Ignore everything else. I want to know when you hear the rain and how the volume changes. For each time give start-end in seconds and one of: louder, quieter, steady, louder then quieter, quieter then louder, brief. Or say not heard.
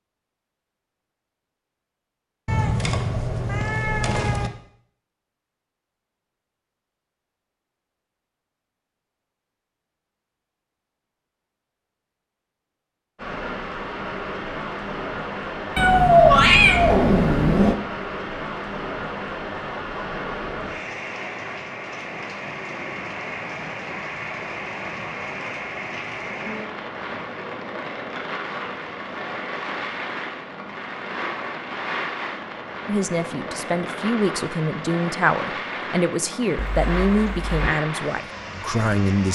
13.2-39.3 steady.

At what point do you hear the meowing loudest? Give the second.
16 s.